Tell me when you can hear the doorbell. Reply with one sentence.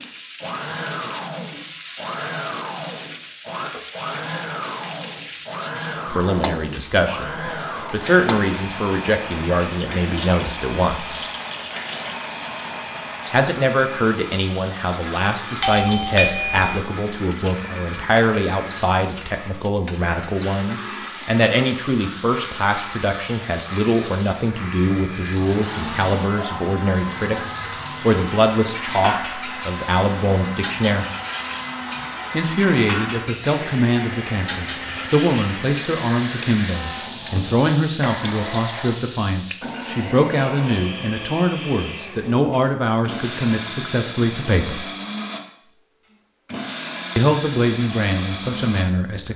You can hear the doorbell from 15.6 to 16.9 s.